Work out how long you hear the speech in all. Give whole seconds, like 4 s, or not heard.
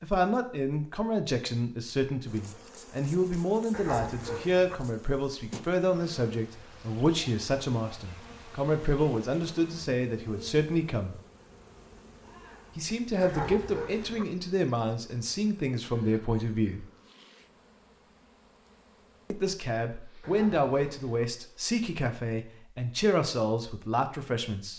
21 s.